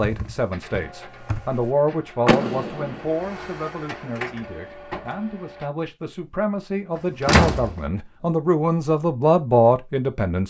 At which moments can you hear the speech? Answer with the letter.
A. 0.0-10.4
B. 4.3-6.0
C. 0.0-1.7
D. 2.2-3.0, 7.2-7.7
A.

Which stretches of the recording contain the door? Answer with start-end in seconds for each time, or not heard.
2.2-3.0, 7.2-7.7.